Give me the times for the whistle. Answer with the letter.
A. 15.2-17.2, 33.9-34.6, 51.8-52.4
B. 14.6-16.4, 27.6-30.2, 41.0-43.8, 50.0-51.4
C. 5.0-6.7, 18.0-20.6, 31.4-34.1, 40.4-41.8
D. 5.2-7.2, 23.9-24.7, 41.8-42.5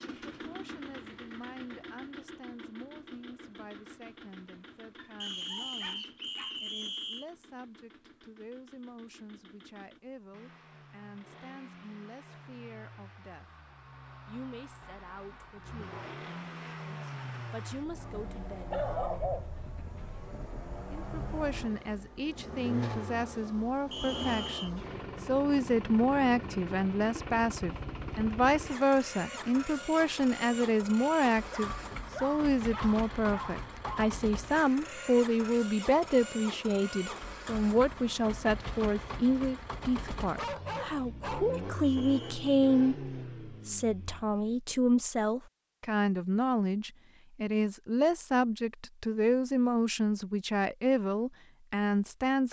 D.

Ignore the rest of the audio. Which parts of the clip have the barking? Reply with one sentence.
The barking can be heard from 5.0 to 6.7 s, from 18.0 to 20.6 s, from 31.4 to 34.1 s and from 40.4 to 41.8 s.